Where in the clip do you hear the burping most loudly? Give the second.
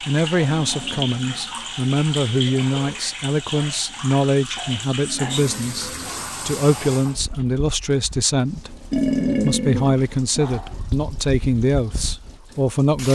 9 s.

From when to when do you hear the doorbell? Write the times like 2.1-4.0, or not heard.
not heard.